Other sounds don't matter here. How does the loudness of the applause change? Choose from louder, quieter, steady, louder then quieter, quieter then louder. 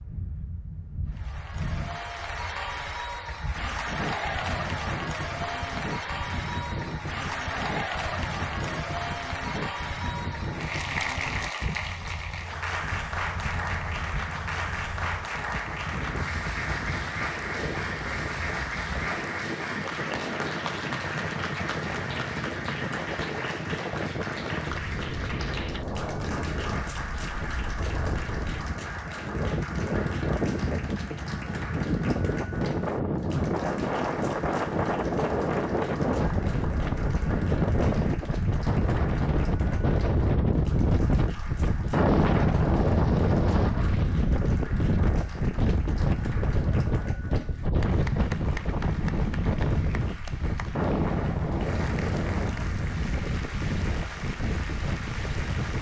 quieter.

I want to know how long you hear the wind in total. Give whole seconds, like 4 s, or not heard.
56 s.